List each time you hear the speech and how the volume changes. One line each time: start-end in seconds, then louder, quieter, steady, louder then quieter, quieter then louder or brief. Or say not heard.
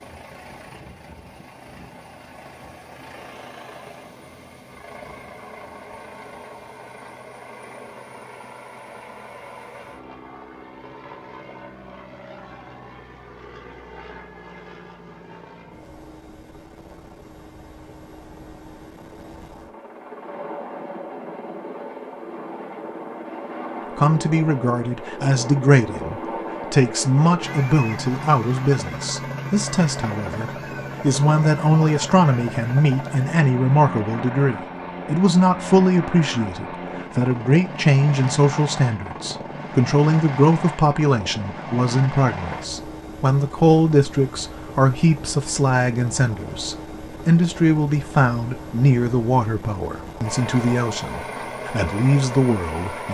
23.9-53.1 steady.